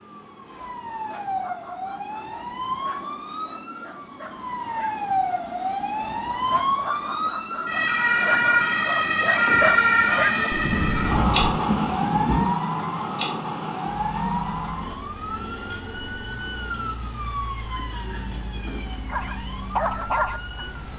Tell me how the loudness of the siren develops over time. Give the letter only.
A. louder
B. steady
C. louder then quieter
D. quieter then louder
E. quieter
C.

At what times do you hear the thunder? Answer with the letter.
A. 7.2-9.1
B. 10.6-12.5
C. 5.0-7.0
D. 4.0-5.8
B.